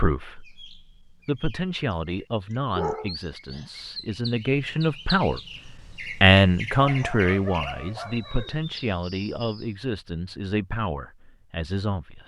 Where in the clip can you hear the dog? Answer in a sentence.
You can hear the dog from 2.7 to 3.6 s and from 6.8 to 8.6 s.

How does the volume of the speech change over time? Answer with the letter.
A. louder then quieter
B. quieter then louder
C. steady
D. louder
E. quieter
A.